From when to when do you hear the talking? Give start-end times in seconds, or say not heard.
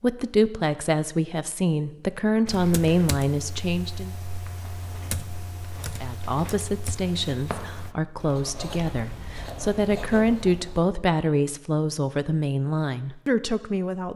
0.0-4.2, 6.0-14.1.